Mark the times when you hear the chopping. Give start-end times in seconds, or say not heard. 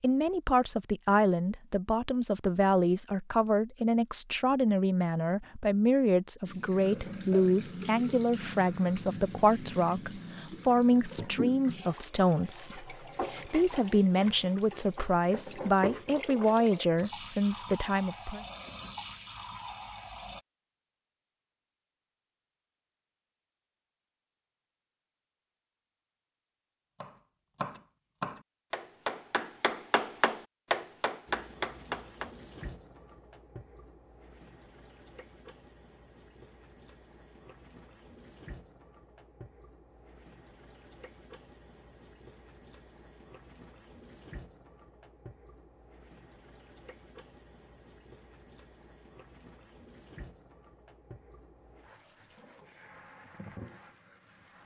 27.0-32.6.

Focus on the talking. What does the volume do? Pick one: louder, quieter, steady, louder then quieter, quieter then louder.
steady.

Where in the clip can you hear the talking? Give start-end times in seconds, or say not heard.
0.0-18.4.